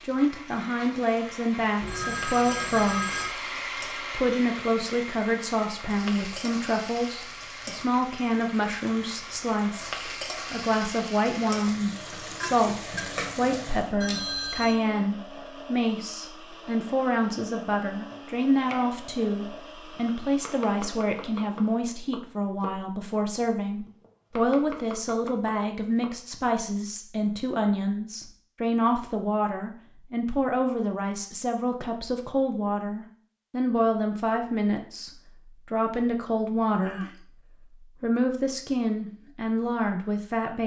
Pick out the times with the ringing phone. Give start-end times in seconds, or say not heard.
1.8-3.3, 14.0-14.8, 36.8-37.2.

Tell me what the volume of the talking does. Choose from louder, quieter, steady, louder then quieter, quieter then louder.
steady.